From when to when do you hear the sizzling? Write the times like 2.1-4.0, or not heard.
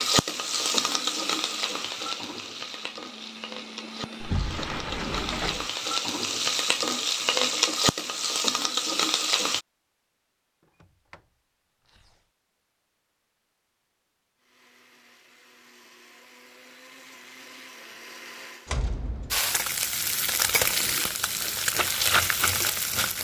0.0-9.6, 19.3-23.1.